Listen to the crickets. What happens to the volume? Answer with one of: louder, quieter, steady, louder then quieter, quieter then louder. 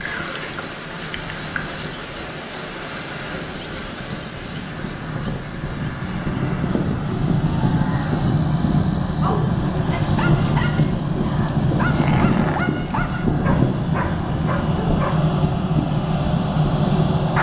quieter.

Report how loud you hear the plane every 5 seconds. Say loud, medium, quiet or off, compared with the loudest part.
quiet, loud, loud, loud.